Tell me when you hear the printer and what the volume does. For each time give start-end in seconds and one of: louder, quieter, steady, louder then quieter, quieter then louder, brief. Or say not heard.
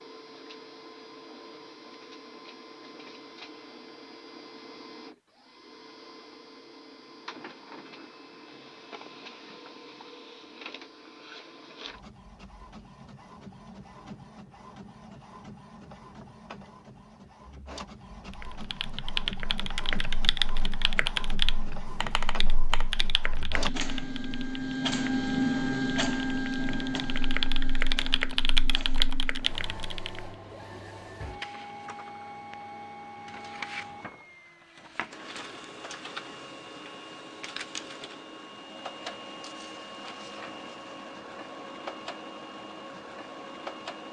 0.0-44.0 louder then quieter.